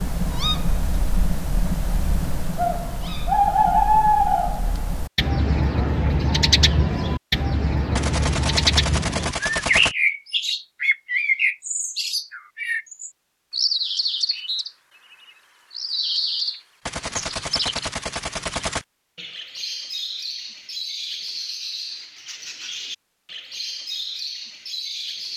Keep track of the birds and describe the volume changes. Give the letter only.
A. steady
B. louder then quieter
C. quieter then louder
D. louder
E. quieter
E.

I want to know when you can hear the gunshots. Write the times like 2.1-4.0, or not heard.
8.0-9.9, 16.9-18.9.